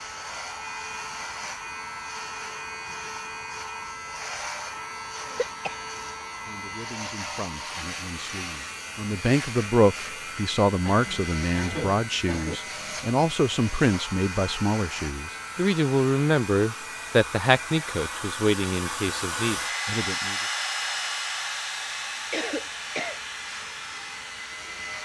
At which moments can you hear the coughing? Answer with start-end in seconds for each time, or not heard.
5.2-5.8, 10.8-12.6, 22.3-23.2.